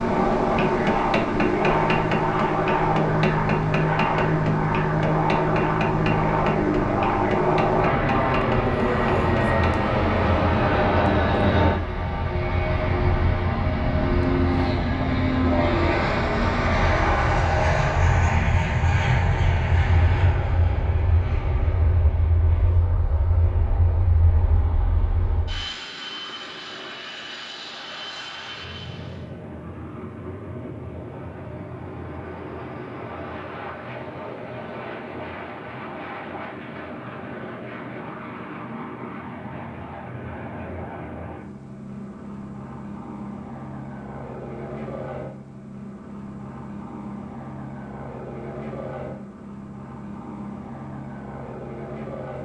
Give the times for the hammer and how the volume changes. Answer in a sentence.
The hammer can be heard from 0.3 to 9.8 s, getting quieter.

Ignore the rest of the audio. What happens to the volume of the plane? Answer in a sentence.
The loudness of the plane goes down.